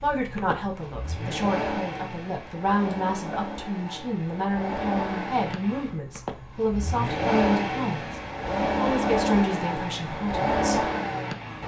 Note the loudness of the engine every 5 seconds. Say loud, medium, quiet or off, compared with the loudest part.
medium, loud, loud.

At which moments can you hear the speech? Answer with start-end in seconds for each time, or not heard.
0.0-10.9.